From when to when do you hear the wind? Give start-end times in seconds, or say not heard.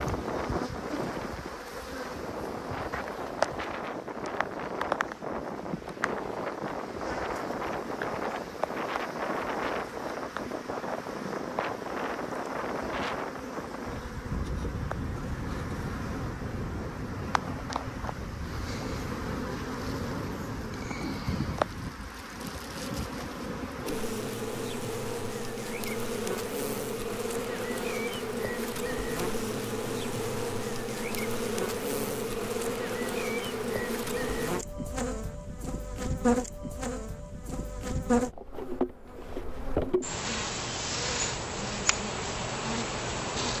0.0-21.9.